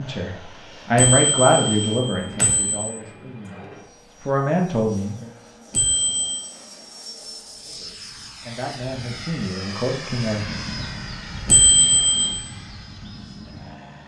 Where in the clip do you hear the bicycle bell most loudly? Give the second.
12 s.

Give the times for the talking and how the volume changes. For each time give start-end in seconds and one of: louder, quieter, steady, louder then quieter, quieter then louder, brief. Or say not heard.
0.0-5.3 quieter then louder
7.6-10.6 brief.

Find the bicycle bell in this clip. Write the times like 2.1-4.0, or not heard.
0.9-2.9, 5.7-6.4, 11.4-12.3.